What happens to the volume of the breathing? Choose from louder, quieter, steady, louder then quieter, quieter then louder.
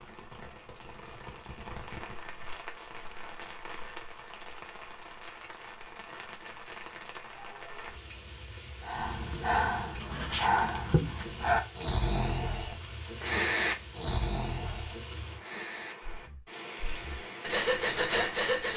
quieter then louder.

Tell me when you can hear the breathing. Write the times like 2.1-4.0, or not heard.
8.8-18.7.